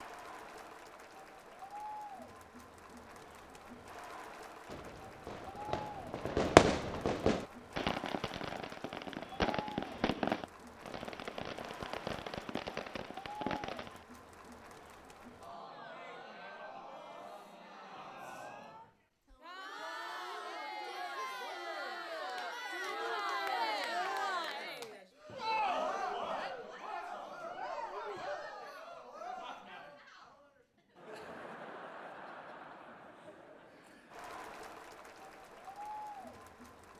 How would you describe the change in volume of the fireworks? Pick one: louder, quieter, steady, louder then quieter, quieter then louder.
quieter.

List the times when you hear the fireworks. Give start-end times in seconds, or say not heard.
4.7-14.0.